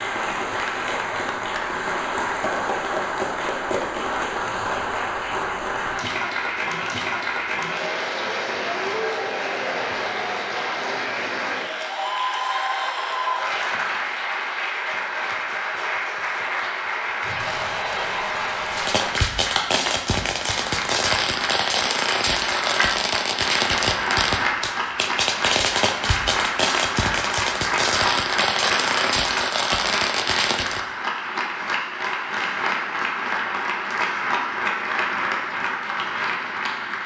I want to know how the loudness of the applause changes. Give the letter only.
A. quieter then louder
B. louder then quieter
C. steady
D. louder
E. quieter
C.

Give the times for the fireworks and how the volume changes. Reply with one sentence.
You can hear the fireworks from 18.7 to 30.8 s, at a steady volume.